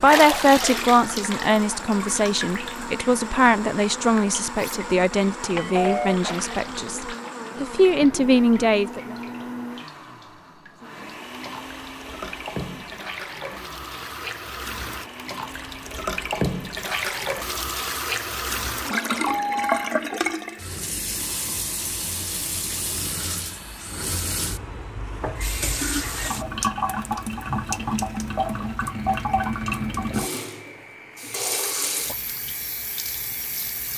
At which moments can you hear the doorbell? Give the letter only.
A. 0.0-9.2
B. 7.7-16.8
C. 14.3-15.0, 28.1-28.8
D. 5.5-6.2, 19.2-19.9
D.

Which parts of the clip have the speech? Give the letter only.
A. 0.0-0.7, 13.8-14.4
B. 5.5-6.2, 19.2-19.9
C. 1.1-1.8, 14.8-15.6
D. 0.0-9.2
D.